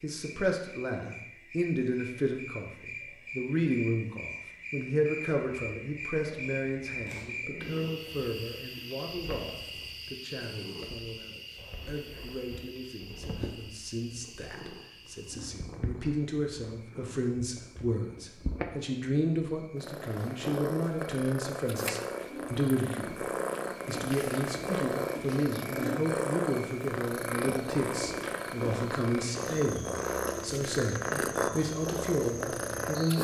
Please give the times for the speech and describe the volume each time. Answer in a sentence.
The speech can be heard from 0.0 to 23.2 s, getting quieter then louder; and from 23.9 to 33.1 s, at a steady volume.